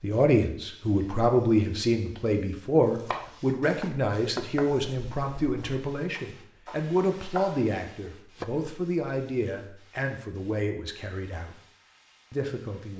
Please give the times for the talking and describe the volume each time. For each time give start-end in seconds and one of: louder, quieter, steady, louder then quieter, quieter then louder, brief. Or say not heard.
0.0-11.6 quieter
12.3-12.9 brief.